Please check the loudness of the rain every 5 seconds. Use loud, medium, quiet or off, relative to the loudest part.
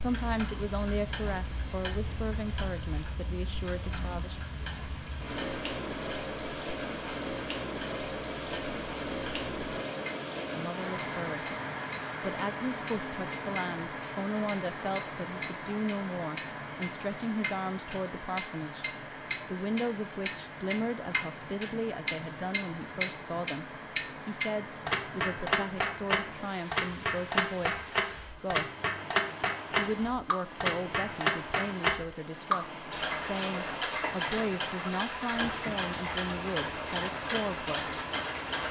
medium, loud, loud, medium, medium, medium, medium, medium.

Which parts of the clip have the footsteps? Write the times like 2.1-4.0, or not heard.
not heard.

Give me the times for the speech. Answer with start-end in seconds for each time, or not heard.
0.0-4.4, 10.6-11.4, 12.2-18.9, 19.4-23.6, 24.2-28.7, 29.8-38.0.